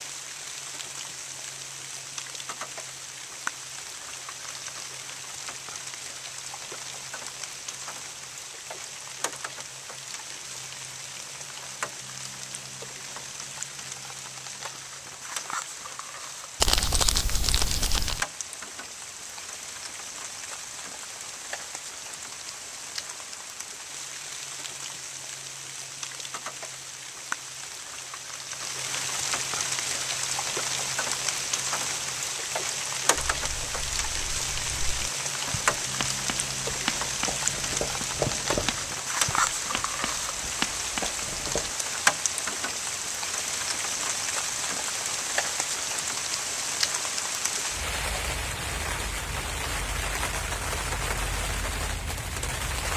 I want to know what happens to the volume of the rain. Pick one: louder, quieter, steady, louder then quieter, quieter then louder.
louder.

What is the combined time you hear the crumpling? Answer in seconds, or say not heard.
2 s.